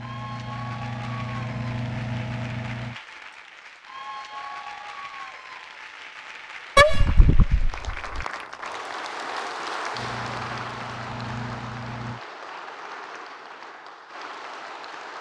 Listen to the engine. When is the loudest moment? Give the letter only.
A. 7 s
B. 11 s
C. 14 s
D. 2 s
D.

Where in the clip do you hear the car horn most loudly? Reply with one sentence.
The loudest moment of the car horn is at 7 seconds.